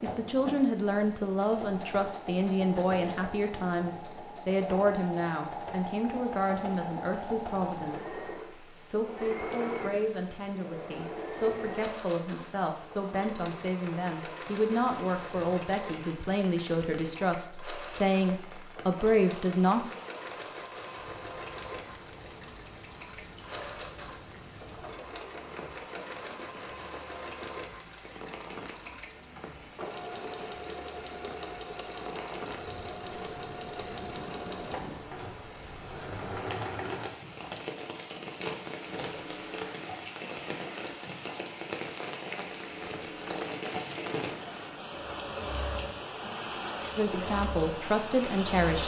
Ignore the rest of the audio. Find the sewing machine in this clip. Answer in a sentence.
The sewing machine can be heard from 0.0 to 48.8 s.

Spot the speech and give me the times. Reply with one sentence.
The speech can be heard from 0.0 to 19.9 s and from 47.0 to 48.8 s.